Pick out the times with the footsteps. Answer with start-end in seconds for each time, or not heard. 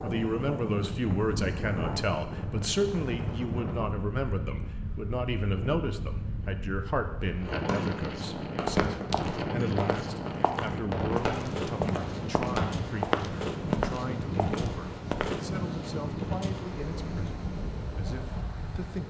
8.6-15.3.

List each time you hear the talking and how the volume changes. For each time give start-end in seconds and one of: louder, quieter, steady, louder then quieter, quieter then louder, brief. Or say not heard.
0.0-19.0 quieter.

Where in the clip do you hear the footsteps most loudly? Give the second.
13 s.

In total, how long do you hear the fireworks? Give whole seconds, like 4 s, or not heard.
5 s.